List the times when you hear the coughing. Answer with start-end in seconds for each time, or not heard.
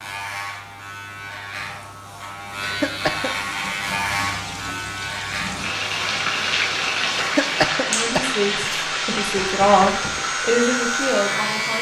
2.6-3.3, 7.2-8.9.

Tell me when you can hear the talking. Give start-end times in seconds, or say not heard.
7.8-11.7.